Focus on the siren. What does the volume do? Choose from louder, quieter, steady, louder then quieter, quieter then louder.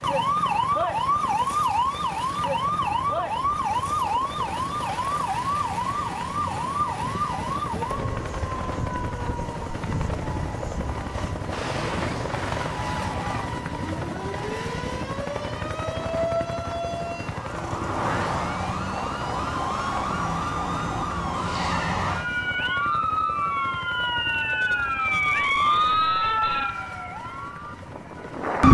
quieter then louder.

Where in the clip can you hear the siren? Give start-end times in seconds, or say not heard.
0.0-28.6.